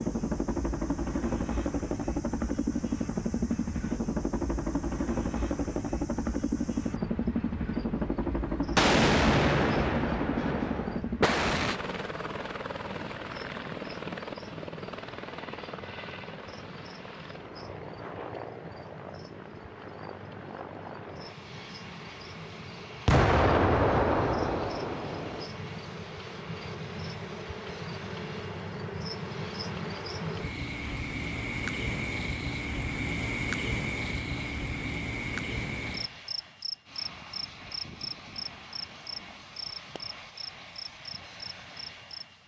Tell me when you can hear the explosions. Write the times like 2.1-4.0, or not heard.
8.8-11.8, 23.1-25.4.